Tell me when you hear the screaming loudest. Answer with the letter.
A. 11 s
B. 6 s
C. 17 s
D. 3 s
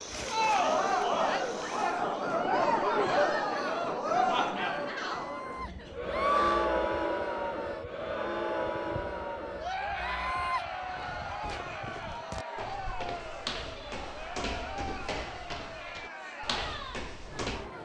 B.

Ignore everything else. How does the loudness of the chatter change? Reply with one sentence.
The volume of the chatter goes down.